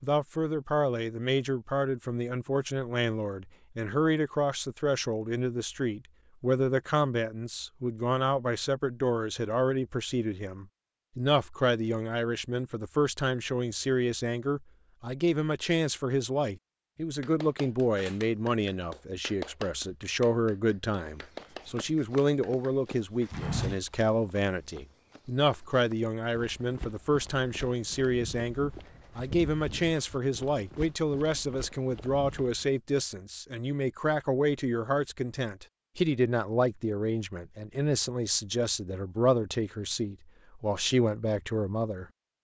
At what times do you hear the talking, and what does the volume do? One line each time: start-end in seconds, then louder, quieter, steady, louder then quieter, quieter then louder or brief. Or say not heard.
0.0-42.0 steady.